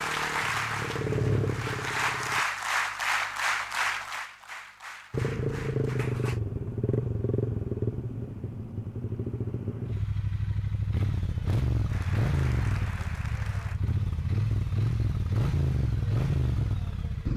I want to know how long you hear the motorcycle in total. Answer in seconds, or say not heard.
15 s.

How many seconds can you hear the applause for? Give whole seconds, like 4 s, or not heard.
8 s.